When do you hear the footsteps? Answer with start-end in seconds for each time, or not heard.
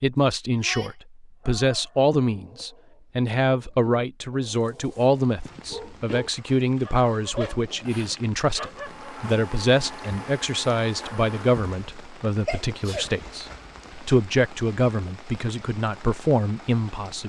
not heard.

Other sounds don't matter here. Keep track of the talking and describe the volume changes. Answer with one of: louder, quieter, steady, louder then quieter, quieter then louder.
steady.